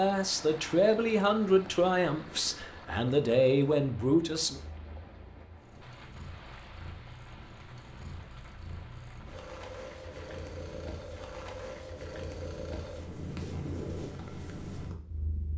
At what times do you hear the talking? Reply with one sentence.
You can hear the talking from 0.0 to 4.6 s.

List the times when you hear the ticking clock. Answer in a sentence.
The ticking clock can't be heard in this clip.